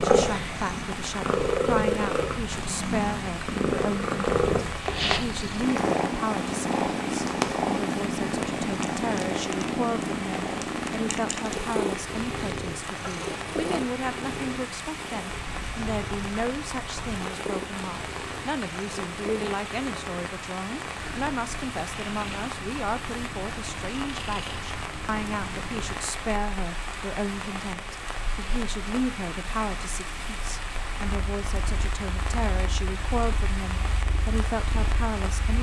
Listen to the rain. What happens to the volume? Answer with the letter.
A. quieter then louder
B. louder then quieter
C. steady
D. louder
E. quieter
C.